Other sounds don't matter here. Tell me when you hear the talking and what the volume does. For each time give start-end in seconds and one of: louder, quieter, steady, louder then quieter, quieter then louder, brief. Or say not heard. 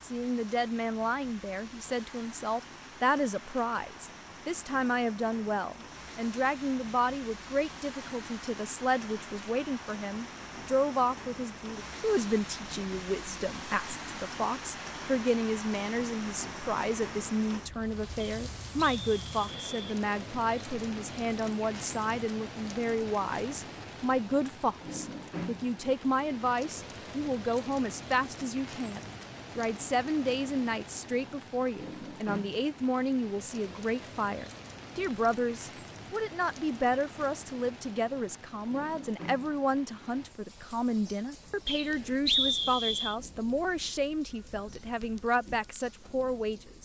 0.0-46.8 steady.